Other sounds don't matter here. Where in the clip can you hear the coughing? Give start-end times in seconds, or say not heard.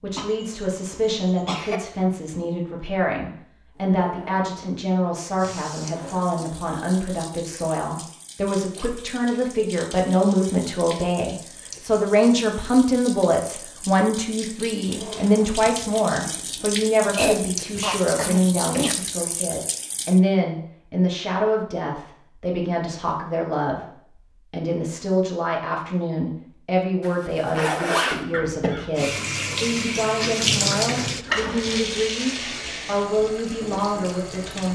0.1-1.8, 17.1-18.9, 28.3-29.1.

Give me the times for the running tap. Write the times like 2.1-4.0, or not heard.
5.3-20.2, 28.9-34.7.